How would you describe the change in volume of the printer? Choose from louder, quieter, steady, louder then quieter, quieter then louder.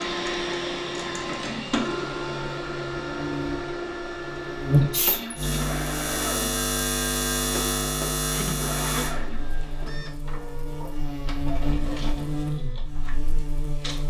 quieter.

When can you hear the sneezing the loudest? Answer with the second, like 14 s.
5 s.